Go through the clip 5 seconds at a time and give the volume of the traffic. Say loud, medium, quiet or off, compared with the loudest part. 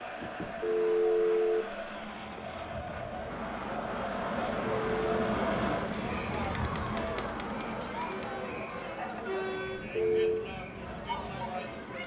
loud, loud, medium.